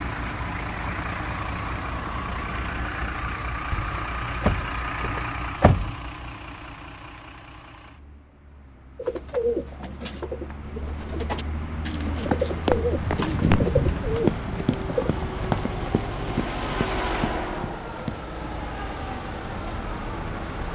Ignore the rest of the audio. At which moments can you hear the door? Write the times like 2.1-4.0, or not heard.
3.7-6.0.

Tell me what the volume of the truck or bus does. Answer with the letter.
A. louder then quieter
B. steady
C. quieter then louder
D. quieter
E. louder
C.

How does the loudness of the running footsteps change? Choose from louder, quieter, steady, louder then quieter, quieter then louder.
quieter.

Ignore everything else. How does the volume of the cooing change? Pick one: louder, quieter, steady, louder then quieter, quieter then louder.
quieter then louder.